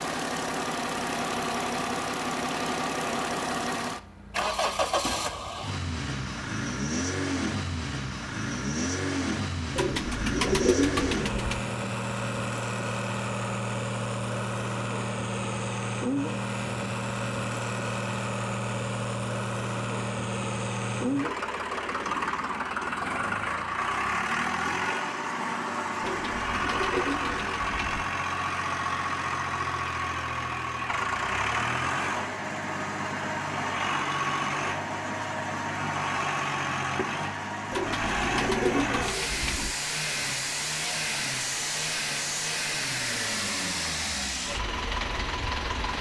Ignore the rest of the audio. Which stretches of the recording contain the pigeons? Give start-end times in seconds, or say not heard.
9.8-11.7, 26.0-28.1, 37.7-39.8.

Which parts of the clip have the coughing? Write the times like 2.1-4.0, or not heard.
not heard.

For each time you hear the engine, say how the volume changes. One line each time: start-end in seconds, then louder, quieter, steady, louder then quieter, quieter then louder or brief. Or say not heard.
0.0-45.9 steady.